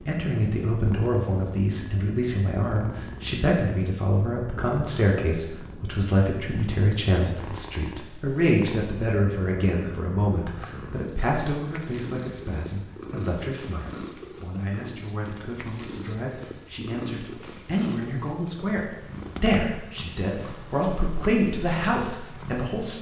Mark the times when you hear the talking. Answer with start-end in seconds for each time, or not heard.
0.1-22.9.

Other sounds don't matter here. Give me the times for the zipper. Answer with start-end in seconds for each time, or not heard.
not heard.